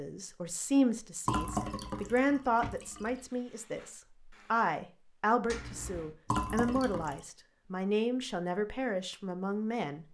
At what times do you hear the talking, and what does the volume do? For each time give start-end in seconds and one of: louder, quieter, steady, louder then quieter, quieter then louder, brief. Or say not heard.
0.0-10.1 steady.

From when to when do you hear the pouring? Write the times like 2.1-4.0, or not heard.
1.2-3.1, 6.2-7.2.